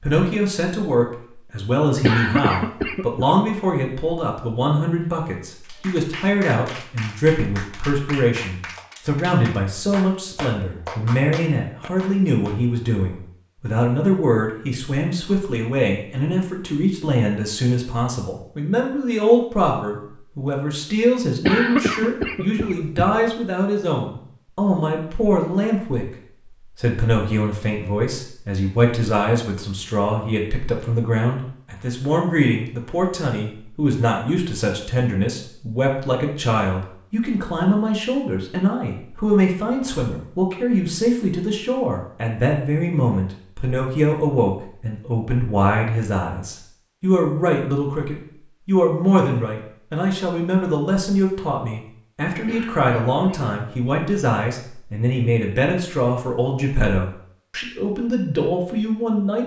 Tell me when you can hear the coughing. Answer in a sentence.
The coughing can be heard from 2.0 to 3.2 s, from 21.4 to 23.3 s and from 52.5 to 53.5 s.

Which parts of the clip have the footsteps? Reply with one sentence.
The footsteps can't be heard in this clip.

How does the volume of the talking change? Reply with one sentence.
The volume of the talking stays about the same.